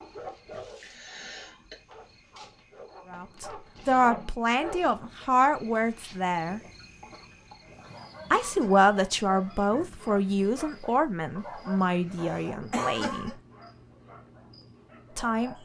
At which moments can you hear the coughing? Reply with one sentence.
The coughing can be heard from 0.8 to 1.8 s, from 7.7 to 8.8 s and from 12.1 to 13.3 s.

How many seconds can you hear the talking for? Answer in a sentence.
You can hear the talking for 9 seconds altogether.